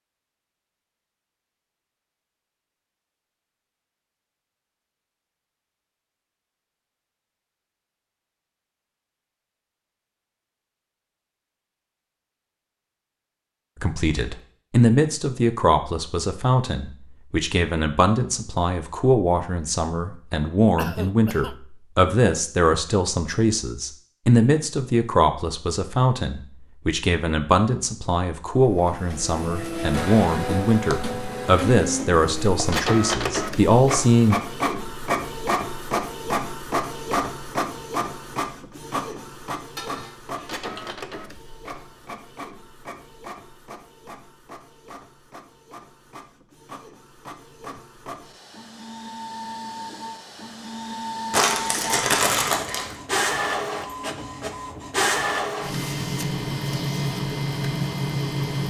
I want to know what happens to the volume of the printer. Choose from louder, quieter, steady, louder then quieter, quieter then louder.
quieter then louder.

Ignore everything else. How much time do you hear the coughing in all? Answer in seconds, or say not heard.
2 s.